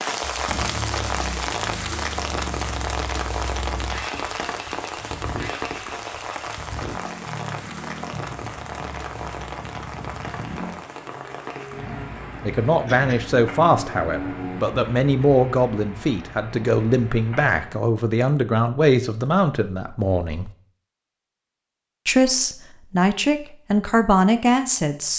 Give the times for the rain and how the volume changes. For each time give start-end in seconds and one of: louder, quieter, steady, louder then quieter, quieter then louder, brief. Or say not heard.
0.0-17.8 quieter.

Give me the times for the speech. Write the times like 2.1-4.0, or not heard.
12.4-20.5, 22.1-25.1.